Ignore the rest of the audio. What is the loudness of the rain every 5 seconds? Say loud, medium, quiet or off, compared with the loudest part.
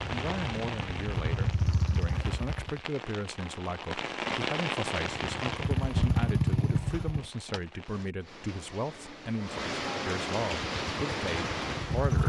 loud, medium, loud.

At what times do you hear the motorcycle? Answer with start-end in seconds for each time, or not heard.
0.0-2.8, 5.0-7.2, 10.7-12.2.